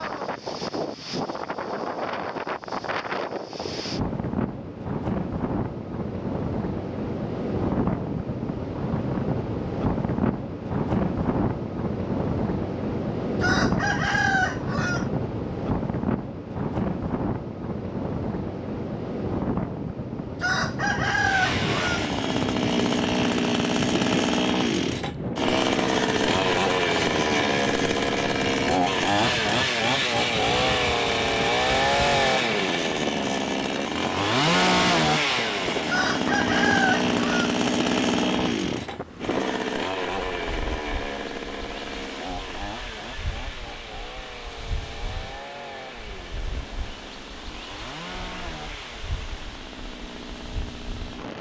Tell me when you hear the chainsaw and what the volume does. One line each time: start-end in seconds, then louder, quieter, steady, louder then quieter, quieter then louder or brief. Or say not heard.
21.1-51.3 quieter.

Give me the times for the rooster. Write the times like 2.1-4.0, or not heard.
13.3-15.1, 20.4-22.1, 35.9-37.5.